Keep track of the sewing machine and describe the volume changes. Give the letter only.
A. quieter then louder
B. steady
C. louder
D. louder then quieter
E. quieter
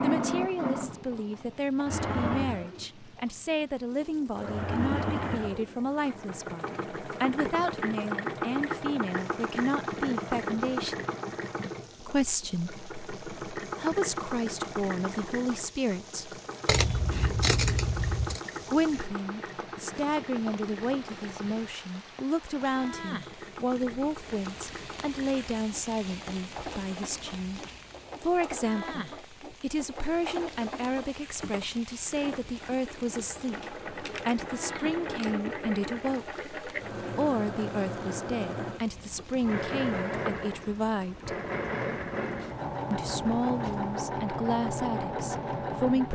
A.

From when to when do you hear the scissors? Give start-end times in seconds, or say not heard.
16.6-18.4, 33.6-35.4.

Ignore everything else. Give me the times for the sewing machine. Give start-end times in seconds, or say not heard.
0.0-46.0.